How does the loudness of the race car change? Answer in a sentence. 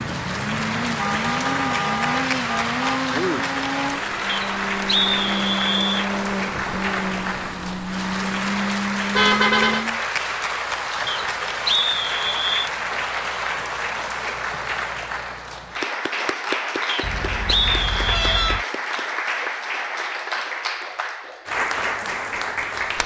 The volume of the race car stays about the same.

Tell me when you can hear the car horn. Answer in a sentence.
You can hear the car horn from 0.9 to 3.0 s, from 9.2 to 9.8 s and from 17.0 to 18.6 s.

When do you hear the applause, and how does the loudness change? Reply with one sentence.
You can hear the applause from 0.0 to 23.0 s, at a steady volume.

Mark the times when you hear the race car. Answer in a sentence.
You can hear the race car from 0.0 to 10.0 s.